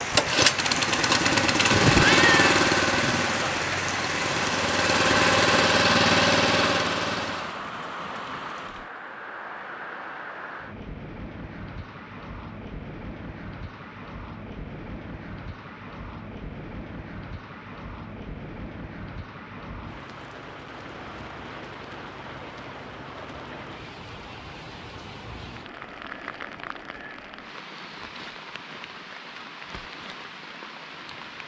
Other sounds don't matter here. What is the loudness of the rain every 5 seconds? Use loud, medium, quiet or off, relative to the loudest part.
loud, medium, medium, medium, medium, medium, medium.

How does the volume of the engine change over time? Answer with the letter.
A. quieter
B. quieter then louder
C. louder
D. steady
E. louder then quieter
B.